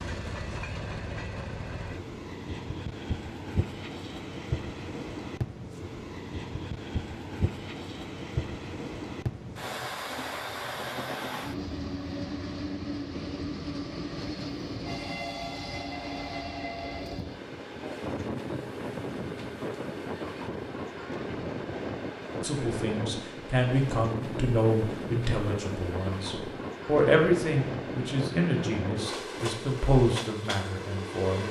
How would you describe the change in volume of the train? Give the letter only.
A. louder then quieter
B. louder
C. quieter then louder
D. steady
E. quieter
D.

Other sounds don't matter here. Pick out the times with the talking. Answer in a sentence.
You can hear the talking from 22.4 to 31.4 s.